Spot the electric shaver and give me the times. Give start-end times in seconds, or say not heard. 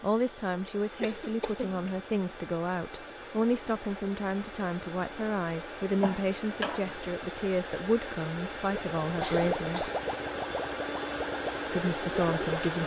not heard.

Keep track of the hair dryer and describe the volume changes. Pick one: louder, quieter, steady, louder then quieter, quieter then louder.
louder.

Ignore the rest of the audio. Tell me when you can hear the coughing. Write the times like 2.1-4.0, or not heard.
1.0-1.9, 6.0-7.0, 9.2-10.0.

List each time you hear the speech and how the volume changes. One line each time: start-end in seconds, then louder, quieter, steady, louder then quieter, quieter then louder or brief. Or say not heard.
0.0-9.9 steady
11.7-12.8 brief.